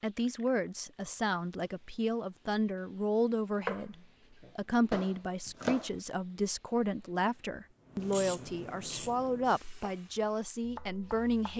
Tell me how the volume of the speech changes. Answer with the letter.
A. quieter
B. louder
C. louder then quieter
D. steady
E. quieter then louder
D.